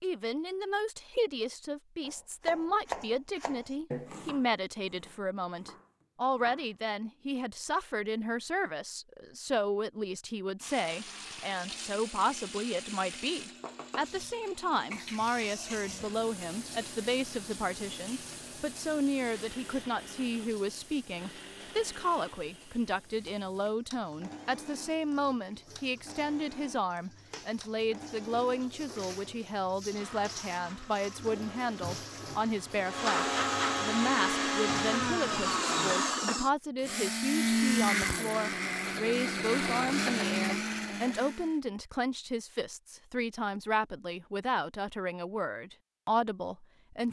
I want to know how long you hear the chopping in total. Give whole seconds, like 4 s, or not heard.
5 s.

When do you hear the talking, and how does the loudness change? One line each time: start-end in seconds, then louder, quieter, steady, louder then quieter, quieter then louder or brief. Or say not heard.
0.0-47.0 steady.